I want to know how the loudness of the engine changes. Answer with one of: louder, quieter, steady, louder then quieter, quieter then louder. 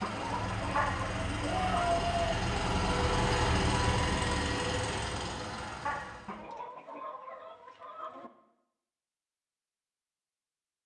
louder then quieter.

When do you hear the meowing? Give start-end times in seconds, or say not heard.
0.8-2.4, 5.8-6.6.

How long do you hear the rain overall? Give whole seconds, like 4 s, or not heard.
not heard.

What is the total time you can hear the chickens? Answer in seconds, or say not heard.
4 s.